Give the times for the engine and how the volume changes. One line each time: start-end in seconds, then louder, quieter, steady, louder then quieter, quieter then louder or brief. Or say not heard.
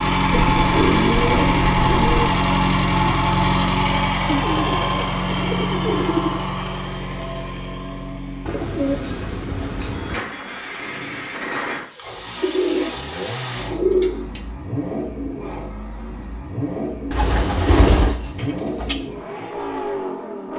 0.0-20.5 quieter.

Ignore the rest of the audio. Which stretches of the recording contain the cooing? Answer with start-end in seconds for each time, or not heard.
0.3-2.4, 4.2-6.4, 8.4-10.2, 12.4-14.4, 17.1-18.9.